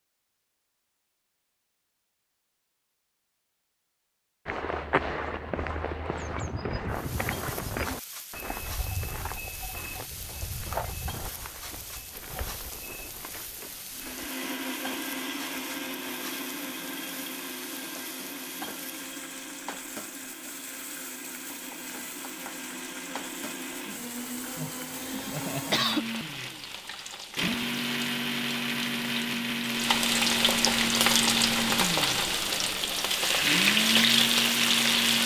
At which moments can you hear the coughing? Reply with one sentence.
The coughing can be heard from 25.0 to 26.1 s.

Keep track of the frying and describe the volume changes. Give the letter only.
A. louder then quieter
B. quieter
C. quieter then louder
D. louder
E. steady
D.